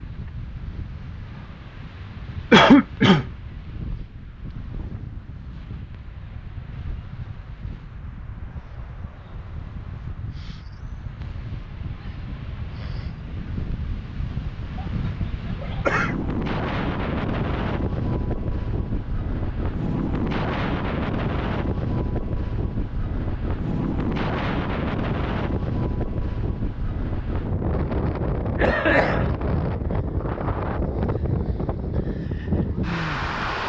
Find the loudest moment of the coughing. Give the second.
3 s.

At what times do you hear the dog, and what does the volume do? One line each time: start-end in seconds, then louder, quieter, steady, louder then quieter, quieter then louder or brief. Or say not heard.
not heard.